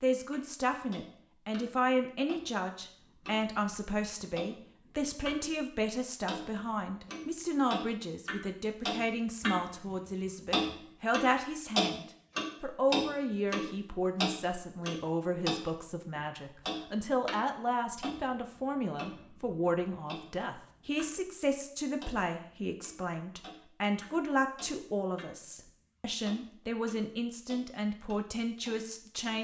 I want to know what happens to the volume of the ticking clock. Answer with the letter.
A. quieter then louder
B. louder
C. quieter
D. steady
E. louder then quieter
E.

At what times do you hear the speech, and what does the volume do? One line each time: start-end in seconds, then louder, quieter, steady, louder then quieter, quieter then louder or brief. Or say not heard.
0.0-29.3 steady.